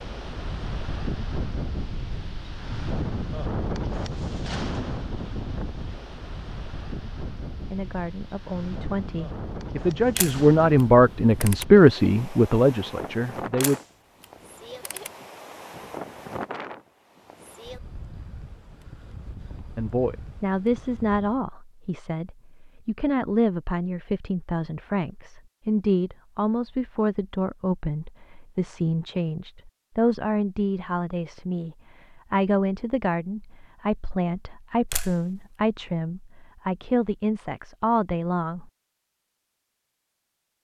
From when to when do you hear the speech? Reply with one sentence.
You can hear the speech from 7.6 to 13.8 s and from 19.8 to 38.7 s.